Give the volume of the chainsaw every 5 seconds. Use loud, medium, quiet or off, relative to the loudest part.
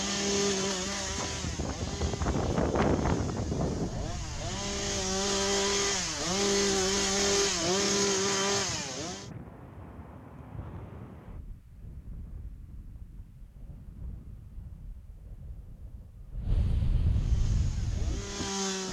medium, loud, off, medium.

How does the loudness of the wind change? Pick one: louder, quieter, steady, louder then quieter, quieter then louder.
quieter then louder.